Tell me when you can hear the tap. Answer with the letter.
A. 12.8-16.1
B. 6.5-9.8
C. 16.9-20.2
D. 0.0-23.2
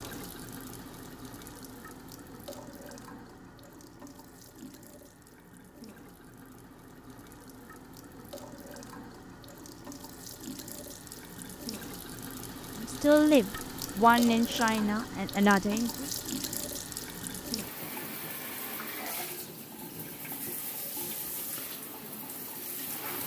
D.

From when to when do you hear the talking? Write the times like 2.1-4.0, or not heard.
12.8-16.1.